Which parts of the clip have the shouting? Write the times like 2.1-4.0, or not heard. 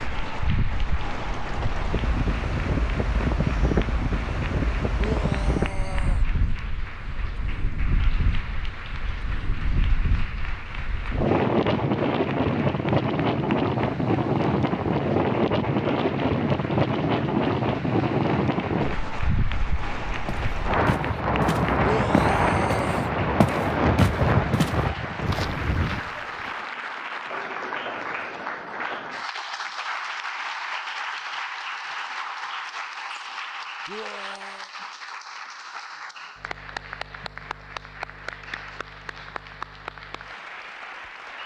5.0-6.2, 21.8-23.1, 33.9-34.7.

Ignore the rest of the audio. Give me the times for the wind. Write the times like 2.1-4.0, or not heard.
0.0-26.1.